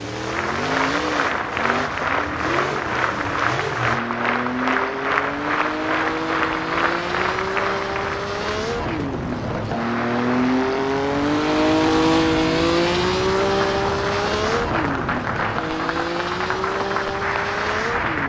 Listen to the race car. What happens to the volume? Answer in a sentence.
The volume of the race car goes up, then down.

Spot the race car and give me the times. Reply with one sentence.
You can hear the race car from 0.0 to 18.2 s.